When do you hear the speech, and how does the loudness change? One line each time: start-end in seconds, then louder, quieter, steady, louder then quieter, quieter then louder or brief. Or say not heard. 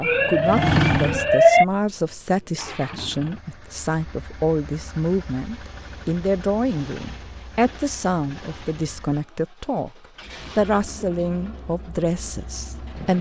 0.0-13.1 steady.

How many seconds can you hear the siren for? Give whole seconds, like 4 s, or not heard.
2 s.